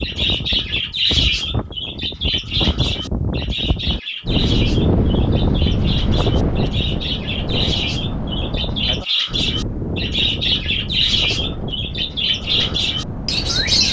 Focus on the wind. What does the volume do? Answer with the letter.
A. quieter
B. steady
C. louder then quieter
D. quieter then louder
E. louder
C.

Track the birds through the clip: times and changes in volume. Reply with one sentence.
You can hear the birds from 0.0 to 13.8 s, getting quieter then louder.